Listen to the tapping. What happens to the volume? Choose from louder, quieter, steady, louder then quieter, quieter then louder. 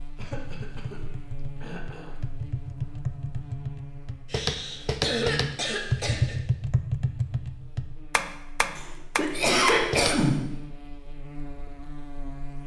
louder.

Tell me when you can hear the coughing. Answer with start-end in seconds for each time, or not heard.
0.1-1.0, 1.6-2.2, 4.2-6.3, 8.8-10.6.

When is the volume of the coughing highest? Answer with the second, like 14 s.
10 s.